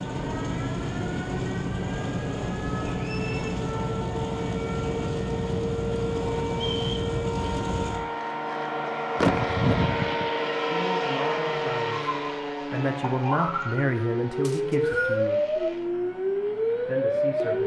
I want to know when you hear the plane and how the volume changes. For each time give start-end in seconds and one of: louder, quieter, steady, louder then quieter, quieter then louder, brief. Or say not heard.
0.0-17.6 quieter.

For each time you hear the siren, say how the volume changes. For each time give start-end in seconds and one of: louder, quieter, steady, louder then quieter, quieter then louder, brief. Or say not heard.
0.0-17.6 louder.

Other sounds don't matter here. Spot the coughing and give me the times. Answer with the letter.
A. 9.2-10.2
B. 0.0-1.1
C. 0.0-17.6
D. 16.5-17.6
A.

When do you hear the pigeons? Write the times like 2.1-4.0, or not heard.
not heard.